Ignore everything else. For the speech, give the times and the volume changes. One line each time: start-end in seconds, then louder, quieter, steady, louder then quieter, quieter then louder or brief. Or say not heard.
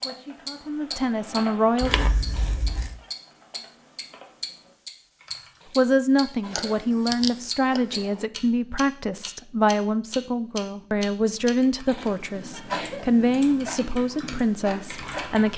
0.0-2.0 brief
5.8-15.5 steady.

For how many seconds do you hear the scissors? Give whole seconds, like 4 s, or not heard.
4 s.